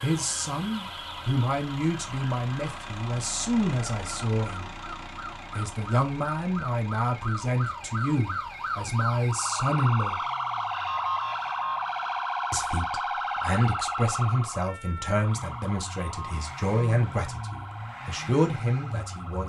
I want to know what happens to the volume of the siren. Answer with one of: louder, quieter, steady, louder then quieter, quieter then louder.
louder then quieter.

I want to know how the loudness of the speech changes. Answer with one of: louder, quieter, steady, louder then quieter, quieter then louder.
steady.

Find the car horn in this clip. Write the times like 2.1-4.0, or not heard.
not heard.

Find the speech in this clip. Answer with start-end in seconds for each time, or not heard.
0.0-4.8, 5.5-10.2, 12.5-19.4.